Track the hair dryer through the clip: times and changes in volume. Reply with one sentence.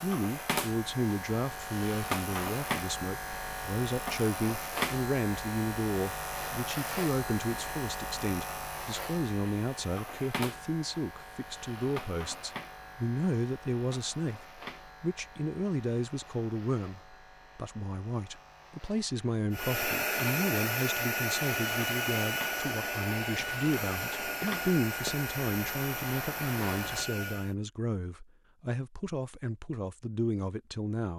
The hair dryer can be heard from 19.5 to 27.6 s, getting quieter.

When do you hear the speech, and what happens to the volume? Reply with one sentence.
The speech can be heard from 0.0 to 31.1 s, at a steady volume.